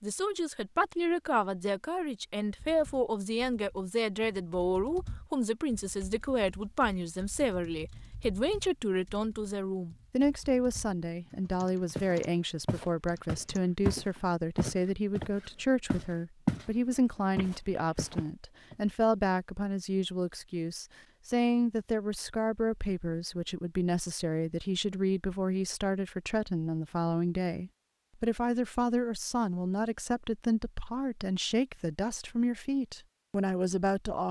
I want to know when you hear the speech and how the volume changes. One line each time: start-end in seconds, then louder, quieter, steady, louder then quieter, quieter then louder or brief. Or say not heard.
0.0-34.2 steady.